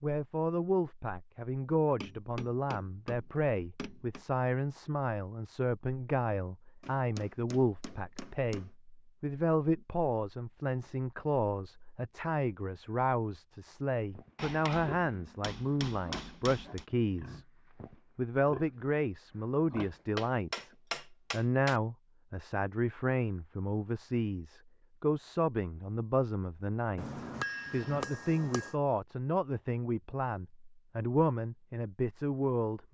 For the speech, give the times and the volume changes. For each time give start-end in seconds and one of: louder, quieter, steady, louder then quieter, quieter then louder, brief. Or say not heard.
0.0-17.4 steady
18.1-32.8 steady.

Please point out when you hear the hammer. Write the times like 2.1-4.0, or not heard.
2.0-4.2, 6.8-8.7, 14.3-16.9, 19.8-21.8, 26.9-28.8.